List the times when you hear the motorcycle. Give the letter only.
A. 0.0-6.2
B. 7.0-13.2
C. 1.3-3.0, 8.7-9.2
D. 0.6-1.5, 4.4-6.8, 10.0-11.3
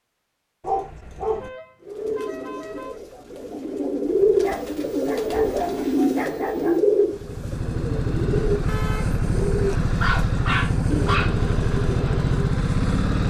B.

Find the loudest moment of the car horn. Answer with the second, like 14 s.
9 s.